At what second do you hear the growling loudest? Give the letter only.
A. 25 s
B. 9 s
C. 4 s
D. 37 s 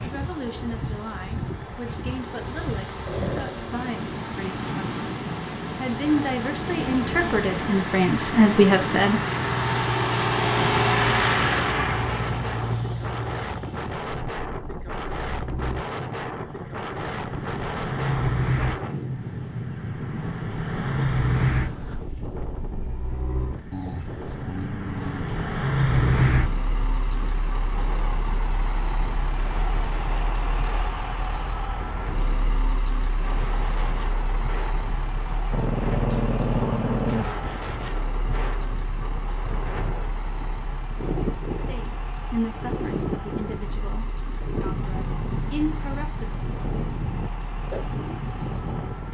D.